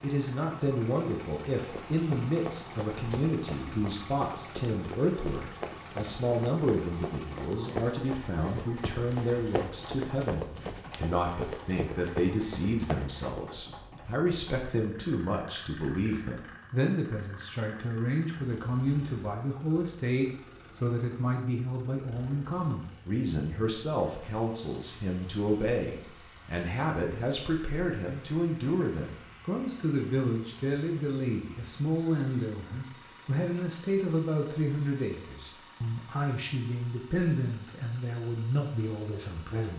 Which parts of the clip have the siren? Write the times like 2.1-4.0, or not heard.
not heard.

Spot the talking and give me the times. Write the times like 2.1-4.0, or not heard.
0.0-39.7.